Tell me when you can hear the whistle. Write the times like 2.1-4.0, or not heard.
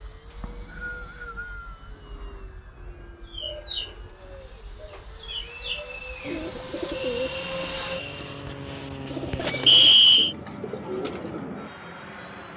0.3-1.9, 5.2-6.5, 9.7-10.3.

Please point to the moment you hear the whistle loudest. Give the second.
10 s.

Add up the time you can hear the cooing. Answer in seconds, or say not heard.
8 s.